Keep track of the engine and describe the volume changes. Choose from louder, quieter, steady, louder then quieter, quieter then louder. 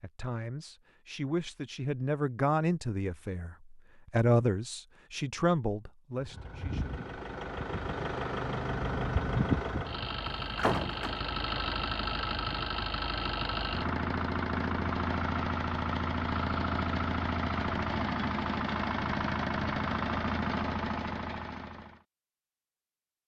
steady.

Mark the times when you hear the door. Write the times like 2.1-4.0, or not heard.
10.2-11.2.